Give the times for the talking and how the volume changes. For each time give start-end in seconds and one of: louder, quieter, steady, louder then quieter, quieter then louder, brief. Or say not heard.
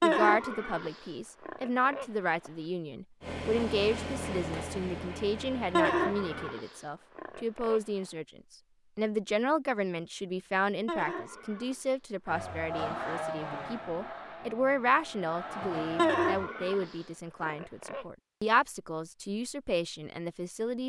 0.0-20.8 steady.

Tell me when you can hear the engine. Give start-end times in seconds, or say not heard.
3.2-6.5, 12.2-16.5.